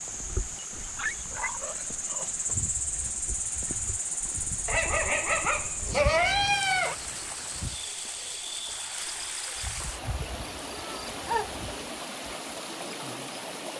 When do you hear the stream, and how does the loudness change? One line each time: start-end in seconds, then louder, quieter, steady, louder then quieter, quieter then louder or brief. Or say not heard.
0.0-13.7 louder.